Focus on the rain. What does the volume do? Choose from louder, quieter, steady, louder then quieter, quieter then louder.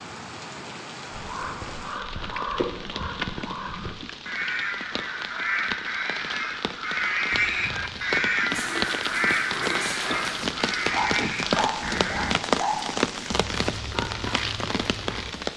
louder.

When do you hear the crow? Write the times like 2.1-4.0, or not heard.
1.1-12.3.